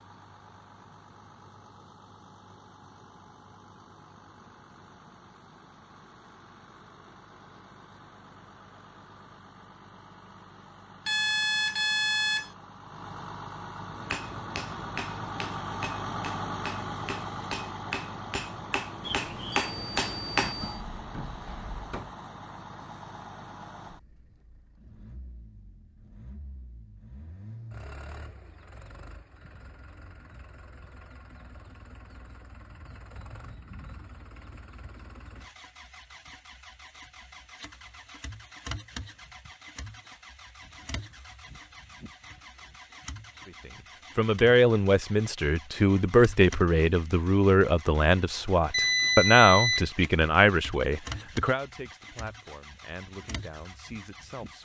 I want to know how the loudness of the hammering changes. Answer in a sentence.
The loudness of the hammering goes up.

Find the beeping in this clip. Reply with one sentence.
The beeping can be heard from 11.1 to 12.5 s, from 19.0 to 20.8 s and from 48.7 to 49.9 s.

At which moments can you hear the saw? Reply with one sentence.
You can't hear the saw here.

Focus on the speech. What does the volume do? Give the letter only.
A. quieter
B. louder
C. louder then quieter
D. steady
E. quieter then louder
A.